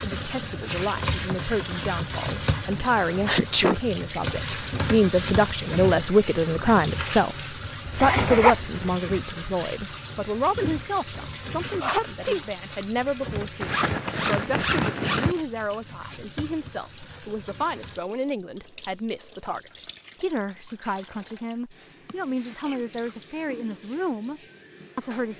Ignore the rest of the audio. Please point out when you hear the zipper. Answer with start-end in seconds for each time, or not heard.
7.8-8.9, 13.6-15.4.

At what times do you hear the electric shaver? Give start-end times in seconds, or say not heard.
not heard.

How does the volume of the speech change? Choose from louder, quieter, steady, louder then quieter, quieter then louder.
louder then quieter.